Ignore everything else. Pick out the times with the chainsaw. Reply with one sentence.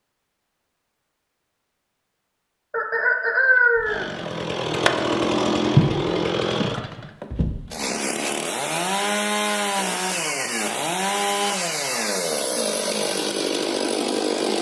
You can hear the chainsaw from 3.8 to 14.5 s.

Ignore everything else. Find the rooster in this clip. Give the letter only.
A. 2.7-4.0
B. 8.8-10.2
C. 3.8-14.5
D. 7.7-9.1
A.